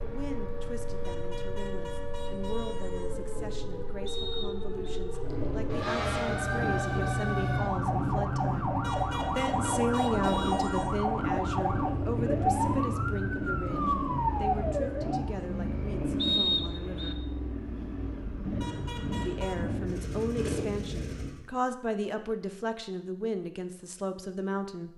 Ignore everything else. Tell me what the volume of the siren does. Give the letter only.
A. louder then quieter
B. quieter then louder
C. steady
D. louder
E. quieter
D.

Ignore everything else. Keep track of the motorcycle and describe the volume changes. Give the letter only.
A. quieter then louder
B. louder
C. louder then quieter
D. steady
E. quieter
B.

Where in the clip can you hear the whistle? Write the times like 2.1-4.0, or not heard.
4.0-4.8, 16.1-17.1.